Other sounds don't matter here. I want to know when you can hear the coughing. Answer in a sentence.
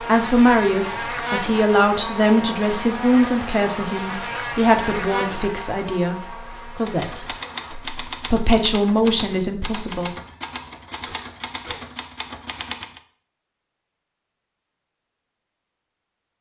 You can hear the coughing from 10.8 to 11.8 s.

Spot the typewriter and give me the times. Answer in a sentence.
You can hear the typewriter from 6.8 to 13.0 s.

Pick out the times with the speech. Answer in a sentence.
The speech can be heard from 0.1 to 7.2 s and from 8.2 to 10.1 s.